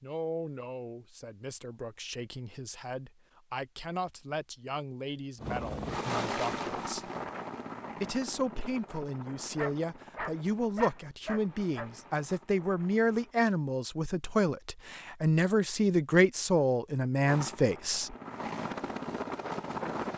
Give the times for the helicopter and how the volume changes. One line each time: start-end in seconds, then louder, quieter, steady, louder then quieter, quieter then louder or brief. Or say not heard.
5.3-13.3 quieter
17.2-20.1 brief.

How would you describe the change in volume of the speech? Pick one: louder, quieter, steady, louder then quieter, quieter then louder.
louder.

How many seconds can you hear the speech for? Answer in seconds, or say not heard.
17 s.